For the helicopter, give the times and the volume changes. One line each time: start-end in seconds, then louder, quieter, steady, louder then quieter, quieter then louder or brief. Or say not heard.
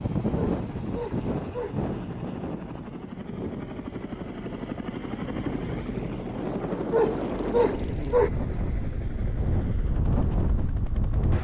0.0-11.3 louder then quieter.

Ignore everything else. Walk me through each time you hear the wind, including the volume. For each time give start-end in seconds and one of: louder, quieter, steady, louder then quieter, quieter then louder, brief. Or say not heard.
0.0-11.3 quieter then louder.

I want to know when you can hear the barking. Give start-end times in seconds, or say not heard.
0.3-1.8, 6.9-8.3.